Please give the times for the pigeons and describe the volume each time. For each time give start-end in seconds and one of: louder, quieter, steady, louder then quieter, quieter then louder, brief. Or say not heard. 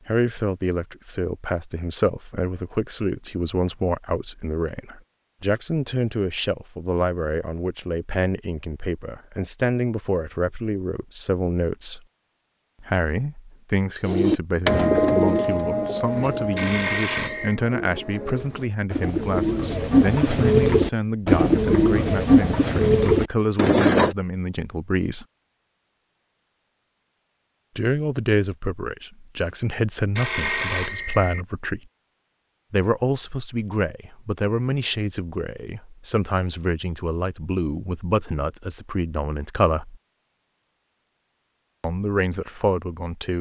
14.1-24.1 quieter then louder.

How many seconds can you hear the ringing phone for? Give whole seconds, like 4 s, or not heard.
2 s.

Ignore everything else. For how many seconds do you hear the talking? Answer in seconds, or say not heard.
37 s.